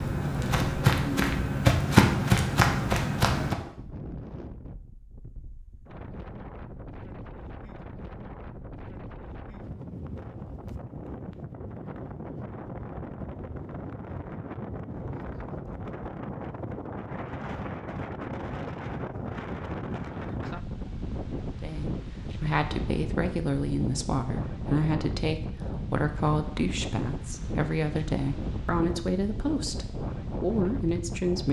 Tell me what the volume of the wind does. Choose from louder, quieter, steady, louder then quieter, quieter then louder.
louder.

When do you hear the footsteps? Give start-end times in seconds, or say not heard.
0.0-3.5.